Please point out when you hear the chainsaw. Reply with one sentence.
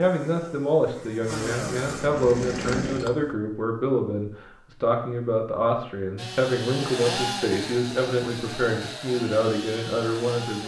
The chainsaw can be heard from 0.0 to 3.4 s and from 6.2 to 10.6 s.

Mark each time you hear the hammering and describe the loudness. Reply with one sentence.
You can't hear the hammering here.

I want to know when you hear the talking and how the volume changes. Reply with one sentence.
The talking can be heard from 0.0 to 10.6 s, at a steady volume.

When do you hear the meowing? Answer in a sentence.
The meowing can't be heard in this clip.